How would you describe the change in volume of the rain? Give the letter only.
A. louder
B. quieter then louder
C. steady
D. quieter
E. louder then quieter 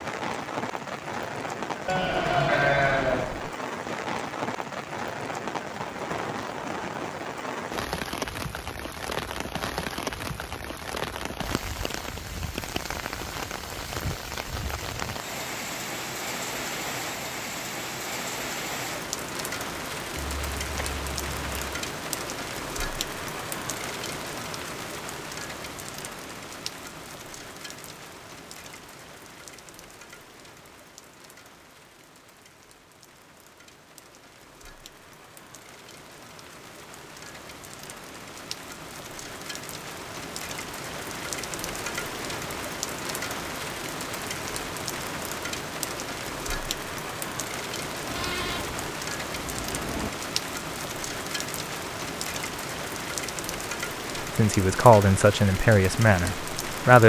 B.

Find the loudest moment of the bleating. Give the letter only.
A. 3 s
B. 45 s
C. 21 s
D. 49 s
A.